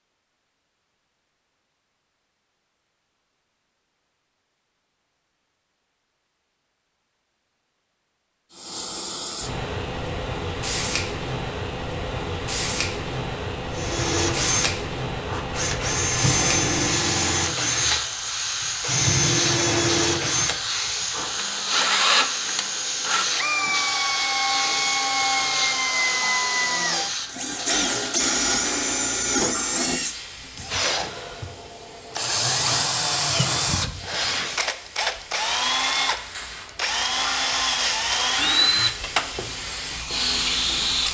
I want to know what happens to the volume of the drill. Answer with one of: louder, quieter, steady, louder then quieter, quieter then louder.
steady.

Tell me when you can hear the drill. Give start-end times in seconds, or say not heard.
13.7-41.0.